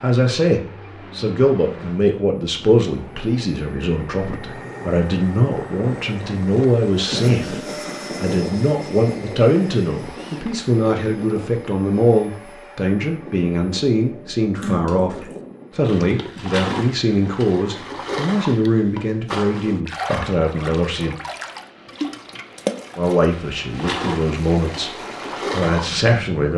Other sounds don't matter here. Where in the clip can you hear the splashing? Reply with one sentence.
The splashing can be heard from 14.6 to 26.0 s.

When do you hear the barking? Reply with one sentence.
You can't hear the barking here.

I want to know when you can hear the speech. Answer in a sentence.
The speech can be heard from 0.0 to 21.1 s and from 22.9 to 26.5 s.